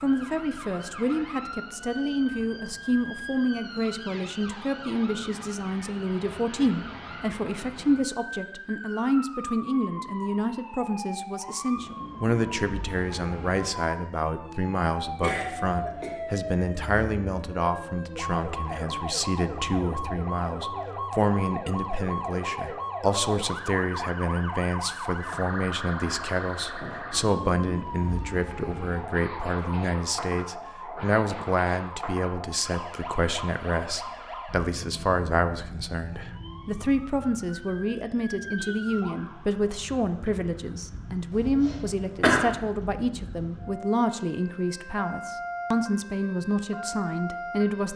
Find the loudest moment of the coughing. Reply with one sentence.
The volume of the coughing peaks at 42 seconds.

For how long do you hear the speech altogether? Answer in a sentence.
The speech can be heard for 48 seconds in total.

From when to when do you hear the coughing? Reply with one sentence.
The coughing can be heard from 15.2 to 16.1 s and from 41.3 to 42.5 s.